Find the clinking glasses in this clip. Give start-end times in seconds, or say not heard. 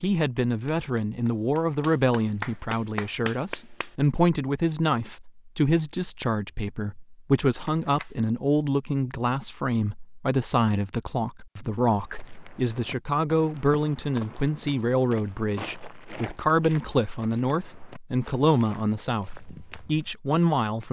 not heard.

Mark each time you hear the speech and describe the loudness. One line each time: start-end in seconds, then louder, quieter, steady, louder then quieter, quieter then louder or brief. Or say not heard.
0.0-20.8 steady.